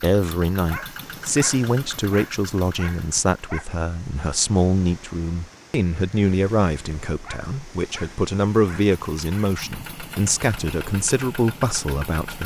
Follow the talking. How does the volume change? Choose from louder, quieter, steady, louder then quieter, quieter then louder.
steady.